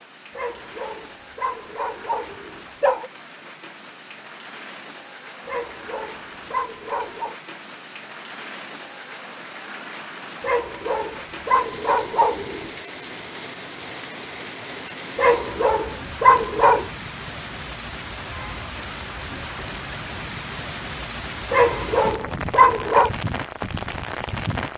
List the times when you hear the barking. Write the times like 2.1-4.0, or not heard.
0.3-3.1, 5.5-7.3, 10.4-12.7, 15.2-16.9, 21.5-23.1.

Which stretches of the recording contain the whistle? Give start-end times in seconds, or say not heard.
not heard.